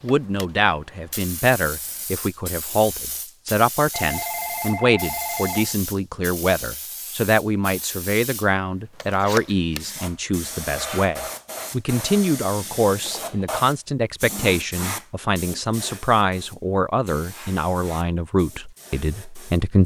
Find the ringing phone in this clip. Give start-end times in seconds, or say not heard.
3.9-5.8, 12.8-13.5.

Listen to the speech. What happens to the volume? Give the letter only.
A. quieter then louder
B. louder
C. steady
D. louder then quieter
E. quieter
C.